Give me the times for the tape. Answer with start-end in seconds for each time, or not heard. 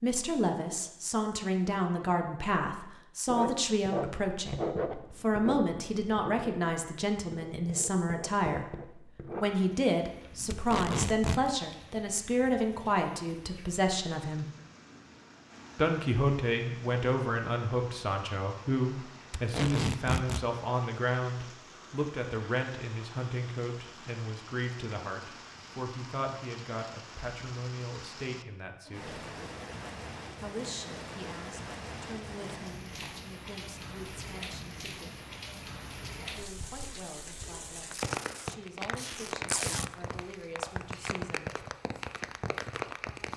10.5-11.5, 19.3-20.4, 37.9-39.9.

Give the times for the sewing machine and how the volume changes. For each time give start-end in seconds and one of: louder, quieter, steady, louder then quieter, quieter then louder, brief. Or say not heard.
not heard.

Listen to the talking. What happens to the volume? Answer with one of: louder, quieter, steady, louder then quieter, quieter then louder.
quieter.